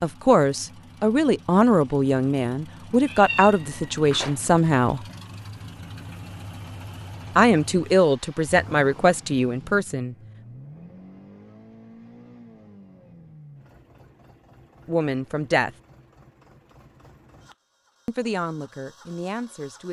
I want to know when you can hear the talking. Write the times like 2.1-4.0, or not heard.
0.0-5.0, 7.3-10.2, 14.8-15.7, 18.1-19.8.